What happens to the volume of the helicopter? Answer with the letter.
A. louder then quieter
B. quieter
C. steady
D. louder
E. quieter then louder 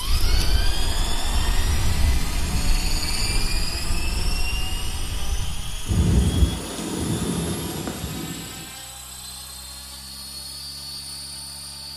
B.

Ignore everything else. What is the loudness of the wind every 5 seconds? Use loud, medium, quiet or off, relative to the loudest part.
medium, loud, off.